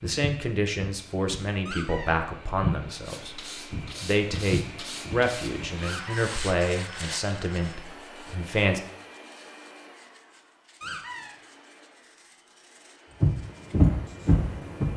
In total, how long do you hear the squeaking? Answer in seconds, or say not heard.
2 s.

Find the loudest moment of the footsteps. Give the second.
14 s.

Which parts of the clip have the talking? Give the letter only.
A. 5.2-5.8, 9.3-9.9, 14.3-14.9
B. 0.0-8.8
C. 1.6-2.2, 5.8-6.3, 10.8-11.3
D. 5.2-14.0
B.